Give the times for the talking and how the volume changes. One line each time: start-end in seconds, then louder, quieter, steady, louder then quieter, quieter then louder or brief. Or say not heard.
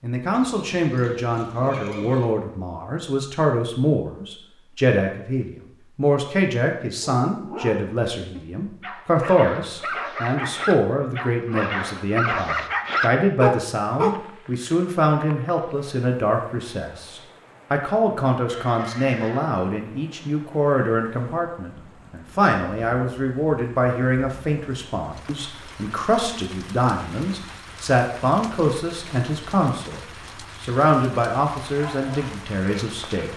0.0-30.0 steady
30.6-33.3 brief.